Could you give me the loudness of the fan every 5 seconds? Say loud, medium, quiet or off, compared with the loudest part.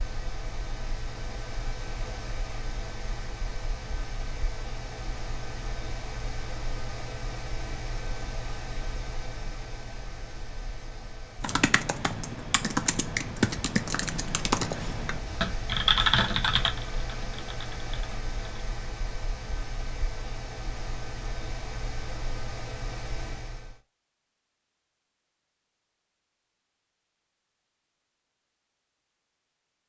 loud, loud, medium, loud, loud, off.